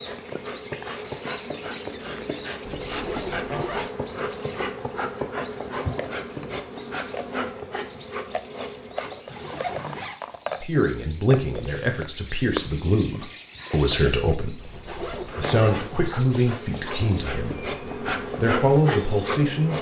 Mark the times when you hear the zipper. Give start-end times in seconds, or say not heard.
2.6-3.9, 9.2-10.2, 14.6-16.1.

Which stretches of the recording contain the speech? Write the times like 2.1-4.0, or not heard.
10.6-14.6, 15.3-17.7, 18.4-19.7.